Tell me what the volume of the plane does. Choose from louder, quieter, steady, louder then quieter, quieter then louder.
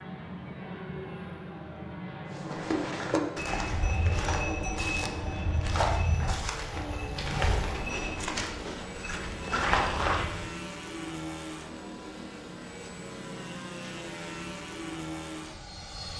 steady.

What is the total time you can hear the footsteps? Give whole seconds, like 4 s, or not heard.
8 s.